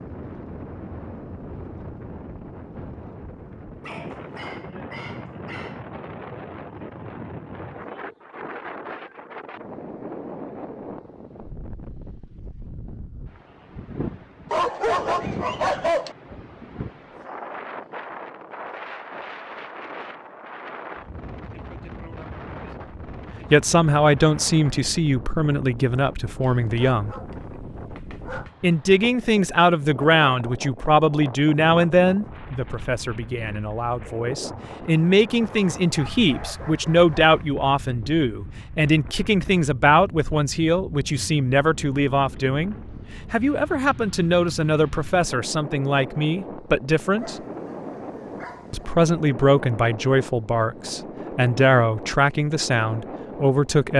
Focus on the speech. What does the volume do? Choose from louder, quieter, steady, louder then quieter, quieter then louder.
steady.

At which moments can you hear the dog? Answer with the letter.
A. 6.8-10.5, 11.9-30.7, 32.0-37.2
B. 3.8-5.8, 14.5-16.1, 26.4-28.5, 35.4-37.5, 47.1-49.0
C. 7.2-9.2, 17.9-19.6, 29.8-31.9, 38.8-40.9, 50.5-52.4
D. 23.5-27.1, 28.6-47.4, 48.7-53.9
B.